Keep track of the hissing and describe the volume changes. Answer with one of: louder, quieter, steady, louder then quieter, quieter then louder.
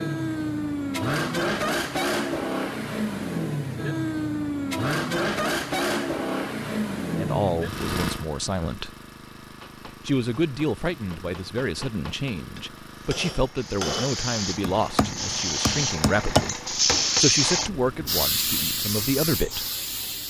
louder then quieter.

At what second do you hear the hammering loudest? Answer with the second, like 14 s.
16 s.